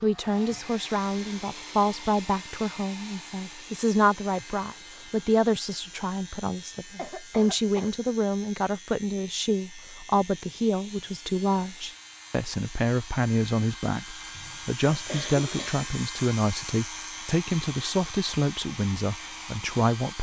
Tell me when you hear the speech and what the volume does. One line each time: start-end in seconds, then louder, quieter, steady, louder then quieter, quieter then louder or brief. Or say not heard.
0.0-20.1 steady.